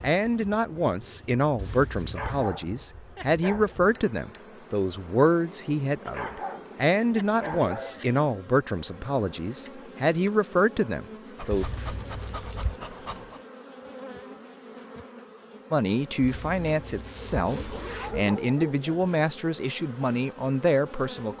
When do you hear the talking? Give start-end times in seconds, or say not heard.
0.0-11.7, 15.7-21.3.